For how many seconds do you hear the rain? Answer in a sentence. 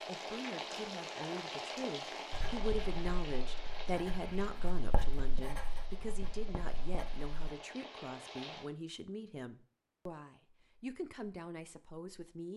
The rain can be heard for 9 seconds in total.